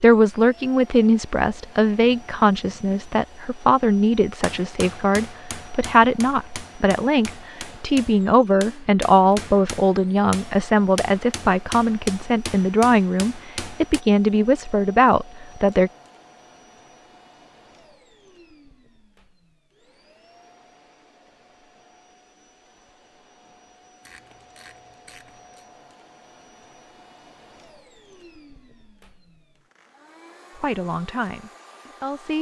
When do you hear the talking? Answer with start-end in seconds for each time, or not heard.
0.0-15.9, 30.6-32.3.